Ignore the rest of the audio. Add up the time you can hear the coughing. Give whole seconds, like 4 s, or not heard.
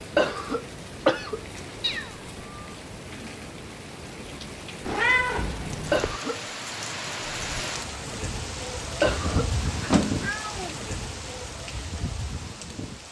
2 s.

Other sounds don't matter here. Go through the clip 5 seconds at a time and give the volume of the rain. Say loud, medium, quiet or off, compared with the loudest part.
medium, loud, loud.